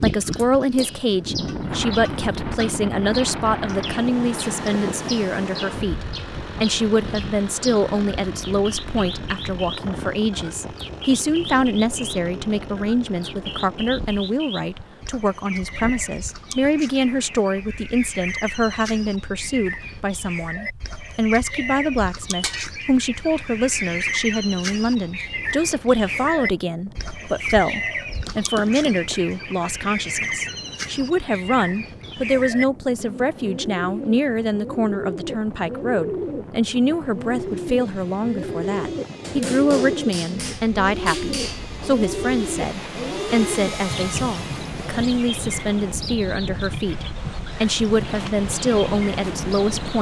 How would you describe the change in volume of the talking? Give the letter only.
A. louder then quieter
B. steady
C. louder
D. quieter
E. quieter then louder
B.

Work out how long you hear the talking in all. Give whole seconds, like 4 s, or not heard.
50 s.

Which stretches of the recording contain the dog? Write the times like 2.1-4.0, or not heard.
not heard.